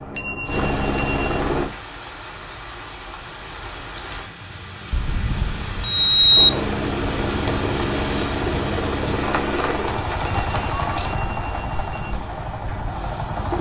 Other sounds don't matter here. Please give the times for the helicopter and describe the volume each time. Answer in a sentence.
You can hear the helicopter briefly from 0.0 to 1.7 s; and from 6.3 to 13.5 s, getting quieter.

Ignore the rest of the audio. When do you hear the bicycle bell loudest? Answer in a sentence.
The loudest moment of the bicycle bell is at 6 seconds.